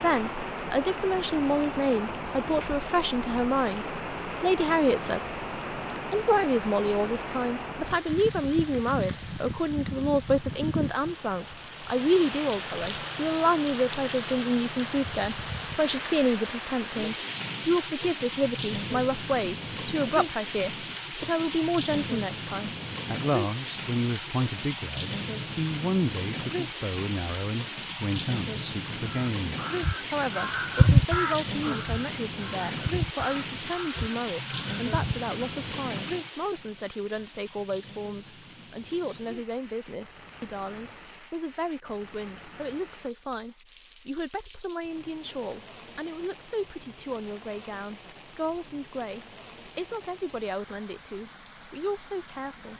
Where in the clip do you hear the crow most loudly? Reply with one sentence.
The volume of the crow peaks at 31 seconds.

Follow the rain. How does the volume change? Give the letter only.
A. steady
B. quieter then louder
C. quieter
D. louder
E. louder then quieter
C.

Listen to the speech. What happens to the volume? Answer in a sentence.
The loudness of the speech goes down.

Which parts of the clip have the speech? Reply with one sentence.
The speech can be heard from 0.0 to 5.4 s and from 6.1 to 52.7 s.